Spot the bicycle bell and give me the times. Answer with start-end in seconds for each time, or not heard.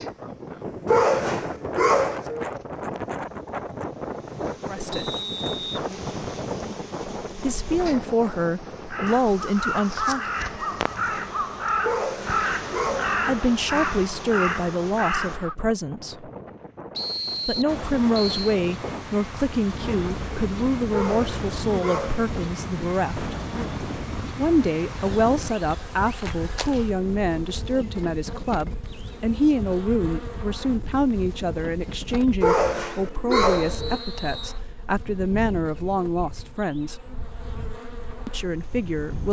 not heard.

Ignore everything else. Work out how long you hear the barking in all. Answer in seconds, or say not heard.
6 s.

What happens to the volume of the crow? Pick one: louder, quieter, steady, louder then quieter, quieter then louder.
steady.